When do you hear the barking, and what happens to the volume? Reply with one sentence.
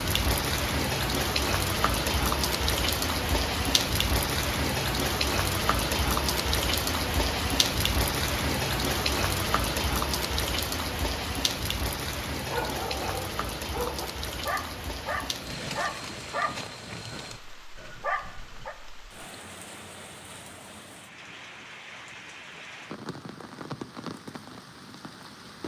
The barking can be heard from 12.5 to 18.8 s, at a steady volume.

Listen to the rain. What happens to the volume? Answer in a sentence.
The volume of the rain goes down.